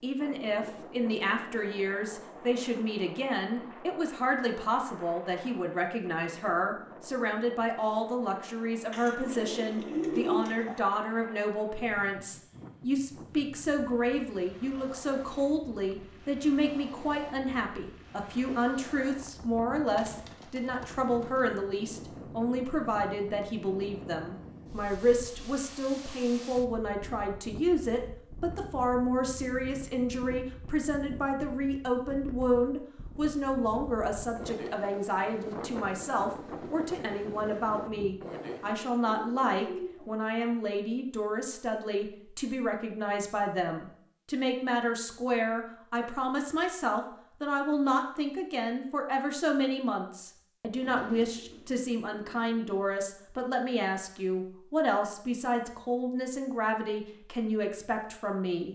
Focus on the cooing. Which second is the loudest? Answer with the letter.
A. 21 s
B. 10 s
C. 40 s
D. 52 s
B.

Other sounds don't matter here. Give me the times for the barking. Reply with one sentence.
You can't hear the barking here.